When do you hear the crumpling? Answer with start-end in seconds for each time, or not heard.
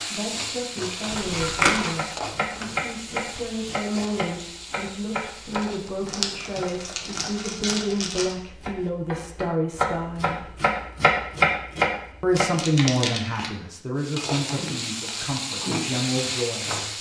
1.1-1.9, 6.0-8.3, 12.3-13.5.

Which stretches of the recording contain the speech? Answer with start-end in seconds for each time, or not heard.
0.1-10.5, 12.2-16.7.